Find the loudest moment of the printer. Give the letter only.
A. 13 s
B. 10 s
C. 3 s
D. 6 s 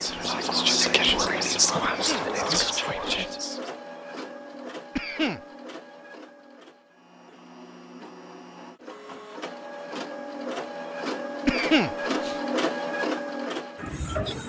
A.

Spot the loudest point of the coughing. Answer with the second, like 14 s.
12 s.